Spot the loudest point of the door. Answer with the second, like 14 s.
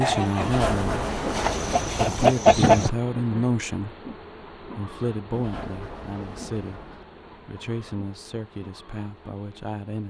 1 s.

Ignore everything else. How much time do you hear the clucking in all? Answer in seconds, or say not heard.
3 s.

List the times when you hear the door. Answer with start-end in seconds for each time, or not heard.
0.4-2.1, 5.3-7.0.